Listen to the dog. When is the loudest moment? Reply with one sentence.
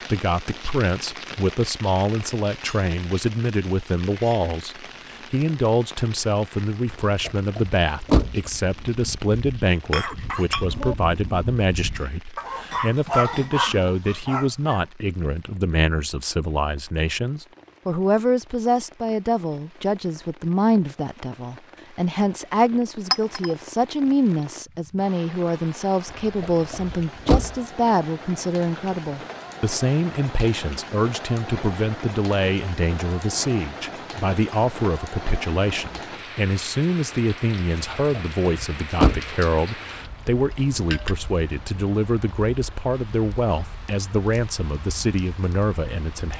The volume of the dog peaks at 13 seconds.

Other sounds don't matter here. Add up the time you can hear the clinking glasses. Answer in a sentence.
You can hear the clinking glasses for 2 seconds altogether.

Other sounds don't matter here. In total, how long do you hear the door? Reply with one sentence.
The door can be heard for 4 seconds in total.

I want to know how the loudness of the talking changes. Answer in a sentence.
The volume of the talking stays about the same.